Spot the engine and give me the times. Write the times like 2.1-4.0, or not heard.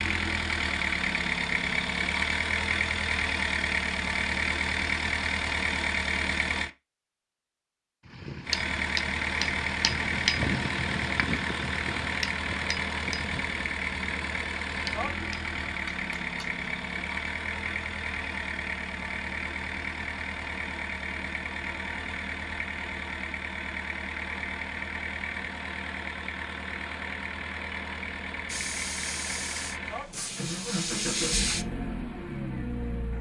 0.0-6.7, 8.4-33.1.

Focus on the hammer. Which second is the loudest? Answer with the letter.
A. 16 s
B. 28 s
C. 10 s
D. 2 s
C.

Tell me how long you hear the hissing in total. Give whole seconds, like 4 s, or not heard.
3 s.